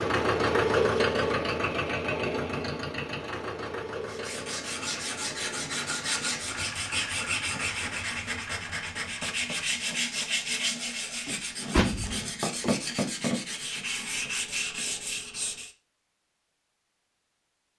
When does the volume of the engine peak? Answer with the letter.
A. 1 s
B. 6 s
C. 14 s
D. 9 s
A.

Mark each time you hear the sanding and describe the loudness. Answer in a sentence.
You can hear the sanding from 4.0 to 15.7 s, at a steady volume.